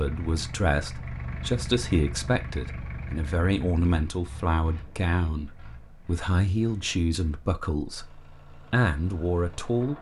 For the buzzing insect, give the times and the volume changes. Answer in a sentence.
You can't hear the buzzing insect here.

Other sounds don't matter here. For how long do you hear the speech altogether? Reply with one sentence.
The speech can be heard for 10 seconds in total.